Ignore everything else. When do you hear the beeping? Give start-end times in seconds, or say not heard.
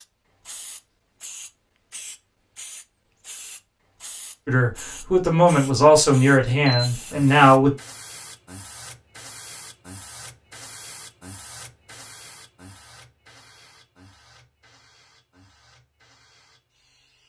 6.7-7.2.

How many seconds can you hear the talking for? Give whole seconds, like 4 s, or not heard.
3 s.